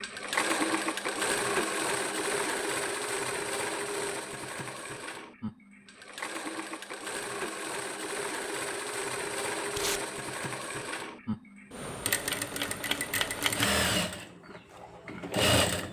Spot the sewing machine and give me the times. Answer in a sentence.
You can hear the sewing machine from 0.0 to 15.8 s.